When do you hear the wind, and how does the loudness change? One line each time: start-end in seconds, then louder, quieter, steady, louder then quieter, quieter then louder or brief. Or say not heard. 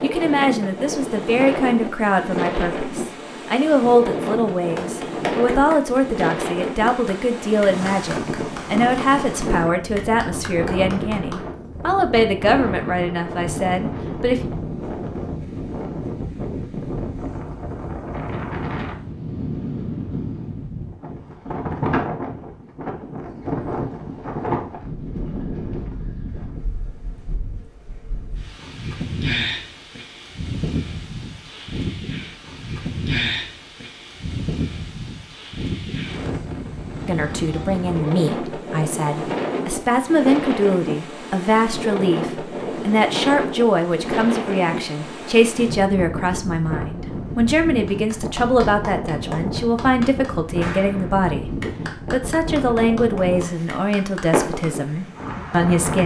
0.0-56.0 steady.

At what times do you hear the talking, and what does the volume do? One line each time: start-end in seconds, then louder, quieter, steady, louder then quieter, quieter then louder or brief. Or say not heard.
0.0-14.4 steady
37.0-56.0 steady.